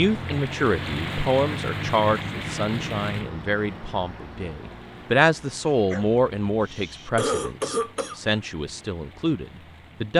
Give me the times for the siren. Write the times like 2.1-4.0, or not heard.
not heard.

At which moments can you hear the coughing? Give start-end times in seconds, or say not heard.
7.2-8.3.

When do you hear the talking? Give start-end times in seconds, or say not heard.
0.0-10.1.